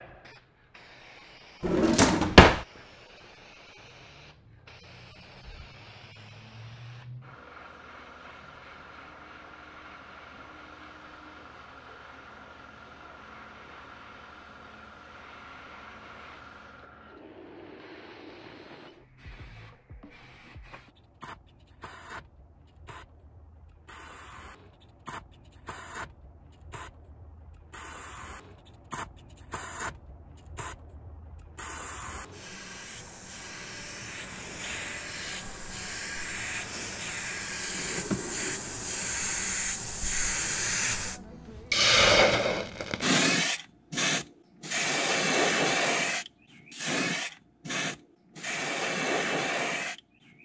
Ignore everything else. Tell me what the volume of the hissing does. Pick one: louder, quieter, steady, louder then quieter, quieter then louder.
louder.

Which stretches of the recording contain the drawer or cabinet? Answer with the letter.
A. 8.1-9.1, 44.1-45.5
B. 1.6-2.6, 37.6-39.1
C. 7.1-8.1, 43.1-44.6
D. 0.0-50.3
B.